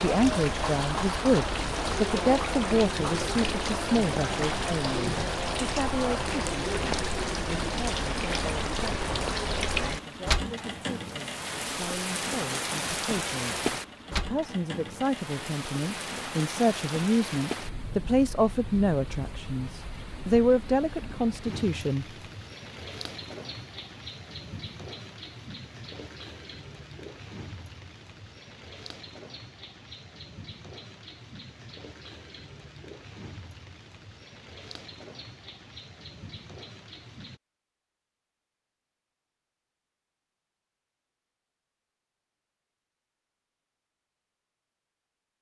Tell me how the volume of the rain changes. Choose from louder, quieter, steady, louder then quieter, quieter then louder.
quieter.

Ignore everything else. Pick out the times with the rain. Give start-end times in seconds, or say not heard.
0.0-37.4.